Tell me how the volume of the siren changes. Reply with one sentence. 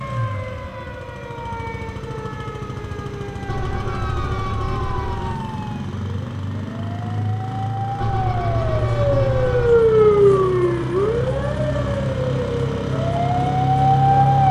The volume of the siren goes up, then down.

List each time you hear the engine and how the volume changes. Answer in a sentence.
The engine can be heard from 0.0 to 14.4 s, getting louder.